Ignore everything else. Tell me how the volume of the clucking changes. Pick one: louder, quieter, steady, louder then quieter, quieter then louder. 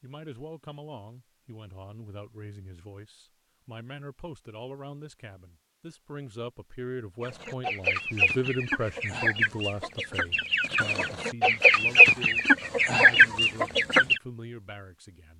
louder.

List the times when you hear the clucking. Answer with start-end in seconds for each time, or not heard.
7.2-14.2.